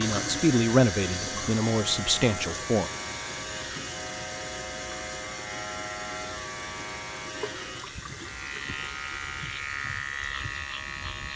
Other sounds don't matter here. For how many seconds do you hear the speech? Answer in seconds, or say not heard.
3 s.